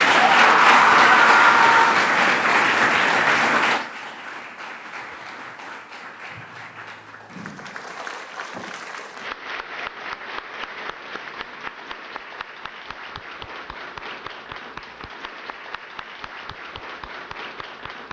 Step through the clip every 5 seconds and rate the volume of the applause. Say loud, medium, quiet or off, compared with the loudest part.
loud, quiet, quiet, quiet.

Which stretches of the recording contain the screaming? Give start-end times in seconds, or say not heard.
0.1-2.0.